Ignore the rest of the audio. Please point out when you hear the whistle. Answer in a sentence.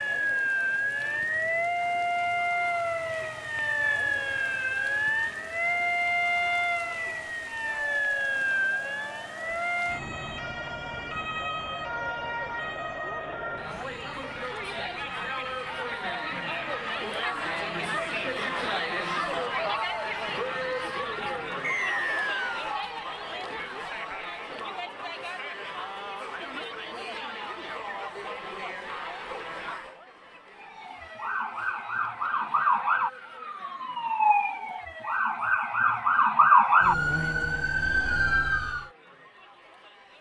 The whistle can be heard from 21.6 to 22.6 s.